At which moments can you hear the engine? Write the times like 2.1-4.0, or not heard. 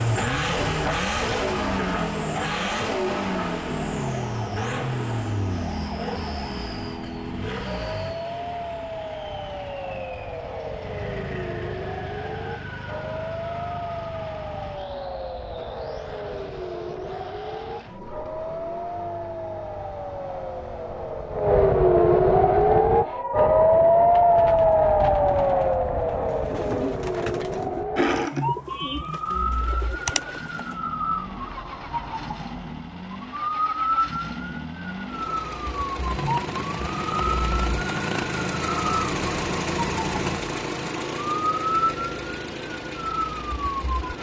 0.0-21.6, 29.2-44.1.